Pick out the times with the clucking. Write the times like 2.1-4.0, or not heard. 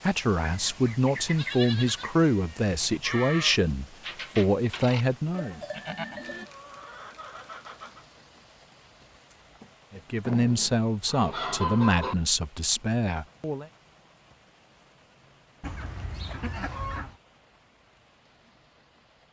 0.5-2.2, 6.2-8.1, 10.2-12.2, 15.6-17.1.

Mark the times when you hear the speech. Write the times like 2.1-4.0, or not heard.
0.0-5.6, 9.9-13.7.